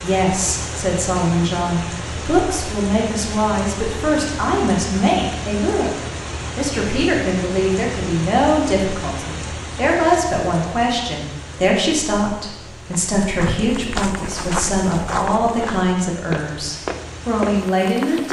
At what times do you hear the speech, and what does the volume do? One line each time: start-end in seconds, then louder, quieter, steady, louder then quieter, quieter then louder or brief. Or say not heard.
0.0-6.0 steady
6.5-18.2 steady.